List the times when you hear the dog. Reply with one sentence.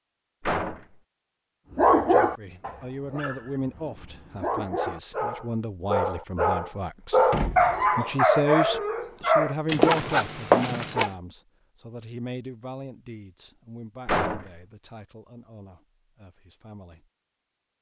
You can hear the dog from 1.8 to 11.1 s.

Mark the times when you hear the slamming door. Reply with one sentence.
The slamming door can be heard from 0.4 to 0.8 s, from 7.3 to 7.9 s and from 14.1 to 14.6 s.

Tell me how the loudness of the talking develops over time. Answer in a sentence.
The loudness of the talking goes up, then down.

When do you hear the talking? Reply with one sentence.
You can hear the talking from 2.0 to 17.1 s.